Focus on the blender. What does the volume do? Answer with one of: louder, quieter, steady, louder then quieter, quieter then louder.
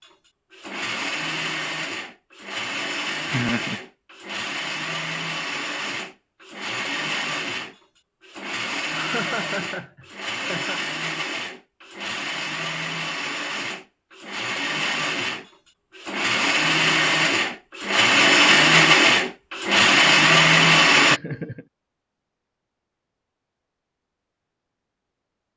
louder.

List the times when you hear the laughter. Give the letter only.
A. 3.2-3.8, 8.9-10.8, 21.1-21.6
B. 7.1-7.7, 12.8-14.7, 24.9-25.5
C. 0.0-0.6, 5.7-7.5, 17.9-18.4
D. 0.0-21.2
A.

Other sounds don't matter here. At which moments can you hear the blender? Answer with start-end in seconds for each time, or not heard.
0.0-21.2.